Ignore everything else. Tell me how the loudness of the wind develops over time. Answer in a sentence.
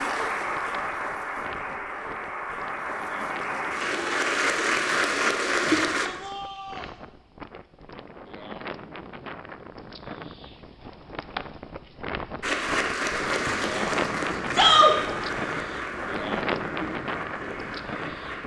The loudness of the wind goes up.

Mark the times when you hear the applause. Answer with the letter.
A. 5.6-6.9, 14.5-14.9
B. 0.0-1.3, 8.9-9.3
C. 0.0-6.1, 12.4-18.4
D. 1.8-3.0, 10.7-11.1
C.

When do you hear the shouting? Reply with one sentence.
The shouting can be heard from 5.6 to 6.9 s and from 14.5 to 14.9 s.